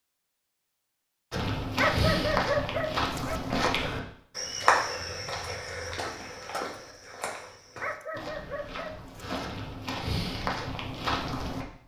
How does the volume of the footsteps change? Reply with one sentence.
The volume of the footsteps goes down, then up.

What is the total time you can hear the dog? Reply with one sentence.
You can hear the dog for 3 seconds altogether.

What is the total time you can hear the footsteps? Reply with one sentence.
You can hear the footsteps for 10 seconds altogether.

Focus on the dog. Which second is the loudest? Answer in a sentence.
The volume of the dog peaks at 2 seconds.